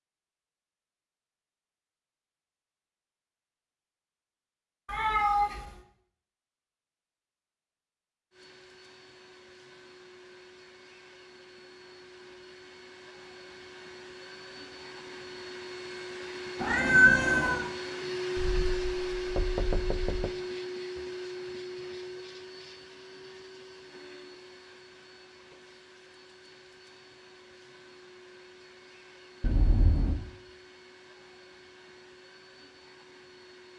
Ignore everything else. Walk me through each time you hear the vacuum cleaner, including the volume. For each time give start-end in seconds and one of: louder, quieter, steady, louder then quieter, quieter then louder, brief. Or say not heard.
8.3-33.7 louder then quieter.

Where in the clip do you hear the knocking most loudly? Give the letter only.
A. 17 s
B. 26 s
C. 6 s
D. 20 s
D.